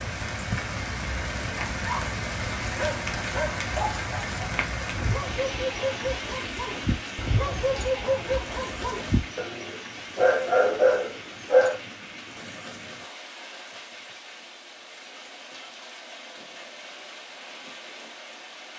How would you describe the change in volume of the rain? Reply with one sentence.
The loudness of the rain goes down.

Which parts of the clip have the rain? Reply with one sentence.
The rain can be heard from 0.0 to 18.7 s.